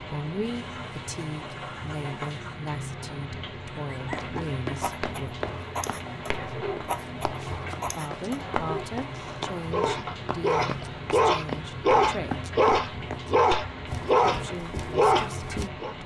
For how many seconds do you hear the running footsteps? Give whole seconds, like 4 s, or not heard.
12 s.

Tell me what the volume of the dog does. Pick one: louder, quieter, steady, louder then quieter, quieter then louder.
louder.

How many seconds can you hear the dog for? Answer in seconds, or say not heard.
12 s.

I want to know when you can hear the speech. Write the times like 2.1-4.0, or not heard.
0.0-5.5, 7.8-12.4, 14.2-16.0.